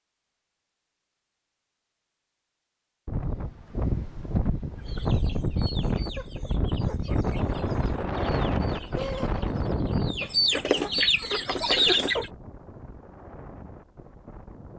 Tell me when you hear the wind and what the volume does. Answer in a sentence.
You can hear the wind from 3.0 to 14.7 s, getting quieter.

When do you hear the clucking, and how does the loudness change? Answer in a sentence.
The clucking can be heard from 4.8 to 12.3 s, getting louder.